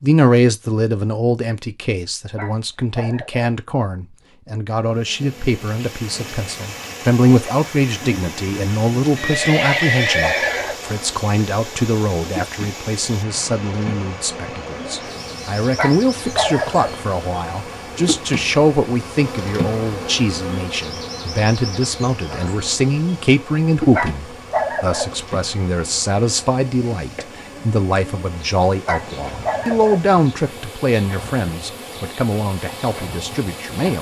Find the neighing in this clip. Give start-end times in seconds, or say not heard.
9.2-10.8.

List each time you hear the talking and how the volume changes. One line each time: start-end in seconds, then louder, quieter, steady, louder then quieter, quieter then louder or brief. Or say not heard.
0.0-33.9 steady.